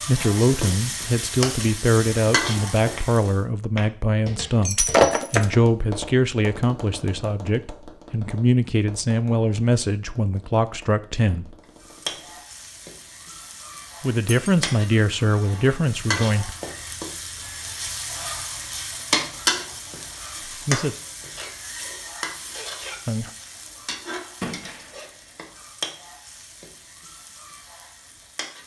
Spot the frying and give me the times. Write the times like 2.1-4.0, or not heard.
0.0-3.4, 11.6-28.6.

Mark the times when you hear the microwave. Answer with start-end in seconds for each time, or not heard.
not heard.